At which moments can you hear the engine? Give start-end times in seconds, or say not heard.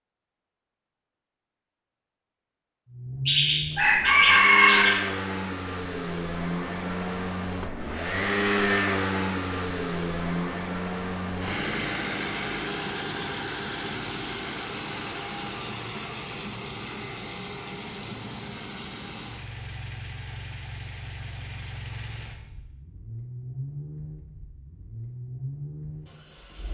2.9-26.7.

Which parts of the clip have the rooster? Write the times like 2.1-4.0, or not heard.
3.2-5.0.